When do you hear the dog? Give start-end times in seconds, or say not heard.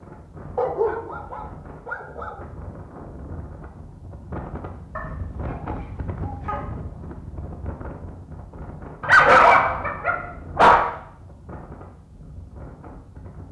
0.6-2.4, 5.0-6.6, 9.0-10.9.